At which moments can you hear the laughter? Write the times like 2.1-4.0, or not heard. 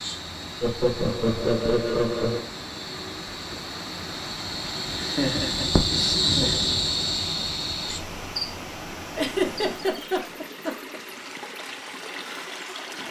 0.6-2.5, 5.0-6.8, 9.2-11.0.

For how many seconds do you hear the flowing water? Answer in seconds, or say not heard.
13 s.